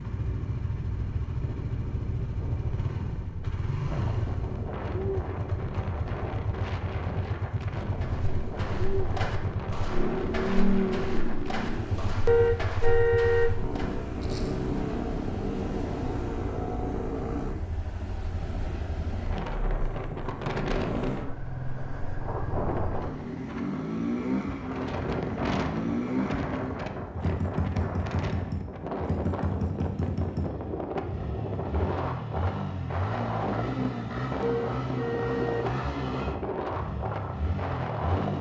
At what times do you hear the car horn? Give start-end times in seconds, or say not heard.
12.2-13.6, 34.4-35.8.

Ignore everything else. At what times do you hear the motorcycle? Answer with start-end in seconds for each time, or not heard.
0.0-38.3.